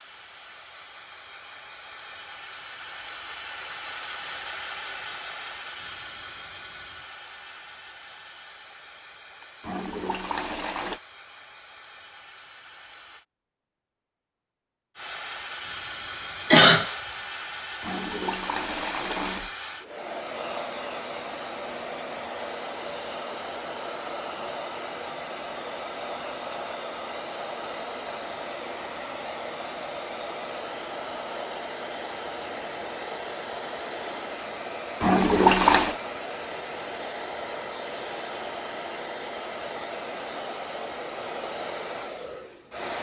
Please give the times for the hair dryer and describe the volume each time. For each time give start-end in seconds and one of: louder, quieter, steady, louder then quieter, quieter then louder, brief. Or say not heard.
0.0-13.2 louder then quieter
14.9-42.9 steady.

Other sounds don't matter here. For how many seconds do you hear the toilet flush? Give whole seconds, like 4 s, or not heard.
4 s.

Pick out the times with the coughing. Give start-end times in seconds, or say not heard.
16.5-16.9.